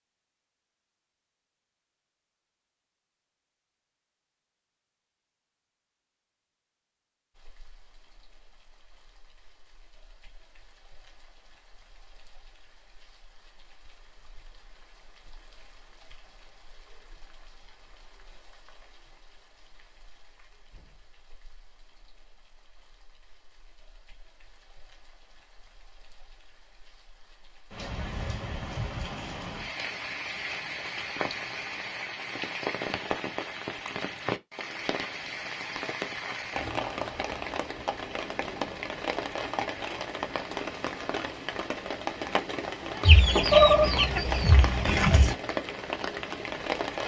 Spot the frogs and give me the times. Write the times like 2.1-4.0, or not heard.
not heard.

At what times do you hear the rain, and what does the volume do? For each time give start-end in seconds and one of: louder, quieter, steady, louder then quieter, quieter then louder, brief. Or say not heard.
7.3-47.0 louder.